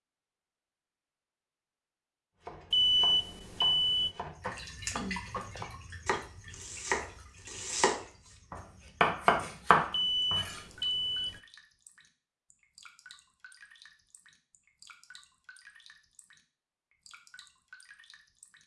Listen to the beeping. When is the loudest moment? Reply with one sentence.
The loudest moment of the beeping is at 3 seconds.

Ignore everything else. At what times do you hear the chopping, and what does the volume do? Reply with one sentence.
You can hear the chopping from 2.5 to 10.6 s, getting louder.